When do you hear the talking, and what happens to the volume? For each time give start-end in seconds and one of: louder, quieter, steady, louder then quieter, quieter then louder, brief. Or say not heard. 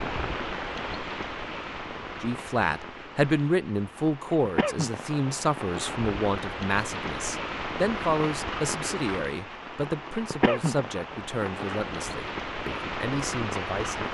2.2-14.0 quieter.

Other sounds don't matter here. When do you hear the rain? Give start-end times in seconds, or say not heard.
0.0-14.0.